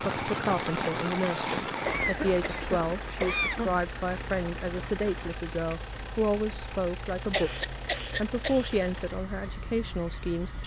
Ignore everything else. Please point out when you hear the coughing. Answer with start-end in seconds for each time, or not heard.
1.9-3.8, 7.3-8.8.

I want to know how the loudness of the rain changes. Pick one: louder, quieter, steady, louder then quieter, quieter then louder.
quieter.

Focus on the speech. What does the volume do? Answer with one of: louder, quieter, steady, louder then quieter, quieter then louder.
steady.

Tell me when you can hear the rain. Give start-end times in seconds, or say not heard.
0.0-5.5.